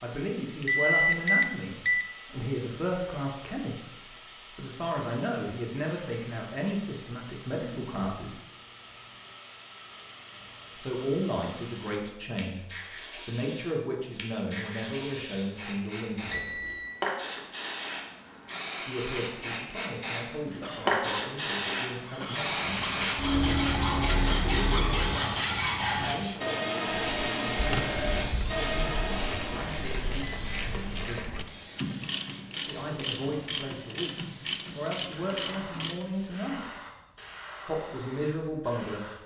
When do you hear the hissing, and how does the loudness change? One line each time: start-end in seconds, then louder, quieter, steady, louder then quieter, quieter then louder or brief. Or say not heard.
0.0-39.2 louder then quieter.